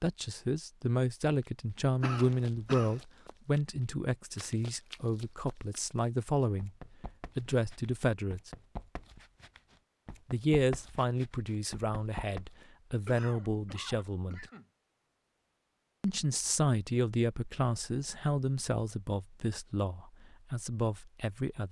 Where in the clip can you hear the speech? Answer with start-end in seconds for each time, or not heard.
0.0-6.7, 7.3-8.5, 10.3-14.4, 16.0-21.6.